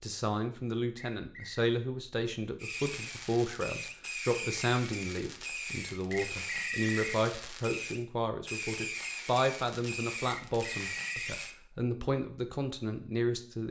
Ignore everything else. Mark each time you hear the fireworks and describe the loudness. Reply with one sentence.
You can hear the fireworks from 2.5 to 11.6 s, at a steady volume.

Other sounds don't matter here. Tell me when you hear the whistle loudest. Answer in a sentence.
The loudest moment of the whistle is at 7 seconds.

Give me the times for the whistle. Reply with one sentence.
The whistle can be heard from 0.9 to 1.6 s, from 6.1 to 7.2 s and from 10.2 to 11.3 s.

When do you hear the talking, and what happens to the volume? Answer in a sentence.
The talking can be heard from 0.0 to 13.6 s, at a steady volume.